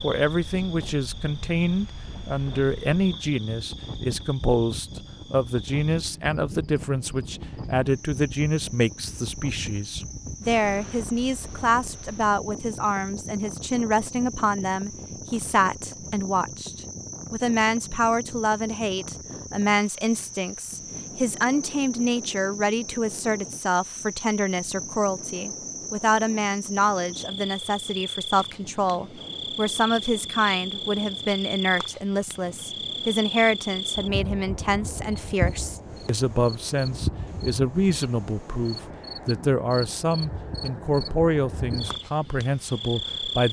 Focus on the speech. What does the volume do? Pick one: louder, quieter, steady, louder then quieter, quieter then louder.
steady.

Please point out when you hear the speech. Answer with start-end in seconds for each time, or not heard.
0.0-43.4.